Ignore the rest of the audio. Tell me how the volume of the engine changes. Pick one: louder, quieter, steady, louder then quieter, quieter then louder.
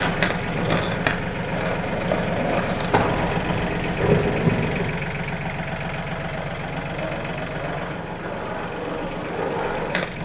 quieter.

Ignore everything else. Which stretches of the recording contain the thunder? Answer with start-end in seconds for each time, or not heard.
2.9-5.0.